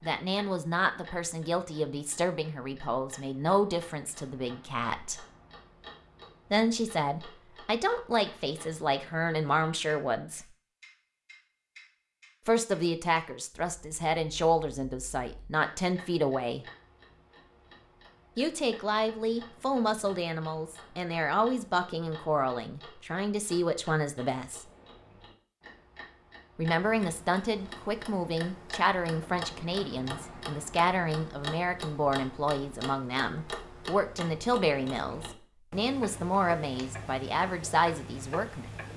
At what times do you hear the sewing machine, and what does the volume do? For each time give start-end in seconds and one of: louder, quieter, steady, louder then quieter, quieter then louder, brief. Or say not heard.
not heard.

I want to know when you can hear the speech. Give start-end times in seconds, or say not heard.
0.0-5.2, 6.5-10.4, 12.4-16.6, 18.4-24.6, 26.6-38.6.